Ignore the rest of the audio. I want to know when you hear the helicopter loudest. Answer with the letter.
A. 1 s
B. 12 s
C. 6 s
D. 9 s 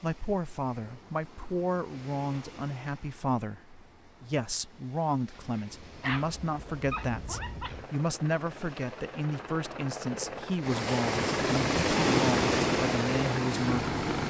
B.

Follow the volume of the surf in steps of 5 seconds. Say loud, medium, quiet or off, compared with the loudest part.
quiet, quiet, loud.